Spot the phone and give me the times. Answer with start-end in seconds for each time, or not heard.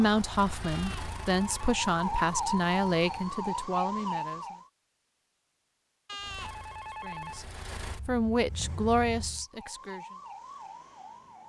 0.6-1.8, 6.0-7.5.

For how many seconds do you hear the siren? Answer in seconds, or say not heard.
7 s.